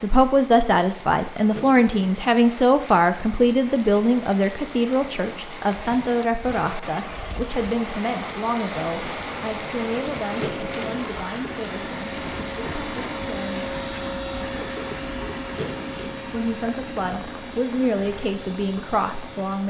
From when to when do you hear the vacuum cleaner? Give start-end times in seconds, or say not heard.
8.8-19.6.